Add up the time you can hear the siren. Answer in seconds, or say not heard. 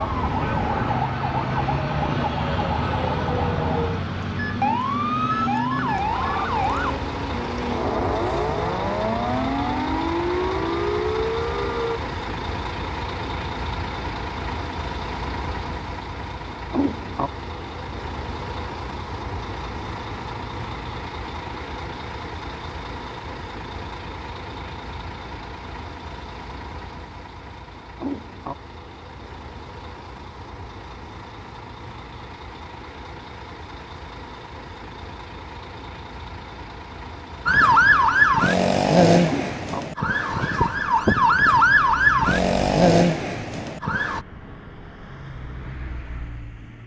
19 s.